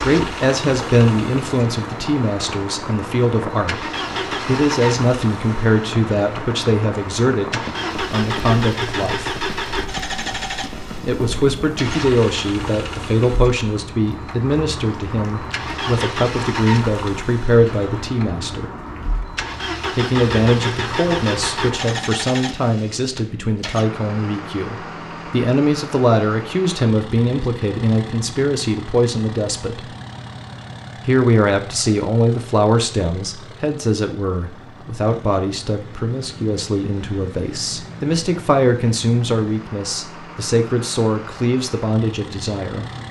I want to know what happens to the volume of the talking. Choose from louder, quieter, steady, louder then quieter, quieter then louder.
steady.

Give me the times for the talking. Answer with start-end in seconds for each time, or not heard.
0.0-9.4, 11.0-18.7, 19.9-29.9, 31.1-42.9.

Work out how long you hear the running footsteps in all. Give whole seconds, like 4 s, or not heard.
not heard.